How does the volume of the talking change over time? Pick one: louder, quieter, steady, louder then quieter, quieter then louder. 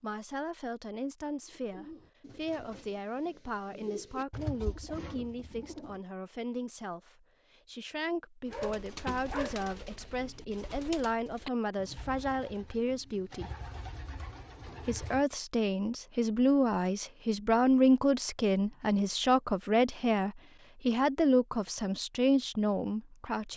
louder.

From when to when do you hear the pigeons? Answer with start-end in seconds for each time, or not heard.
1.4-6.0, 8.4-15.2.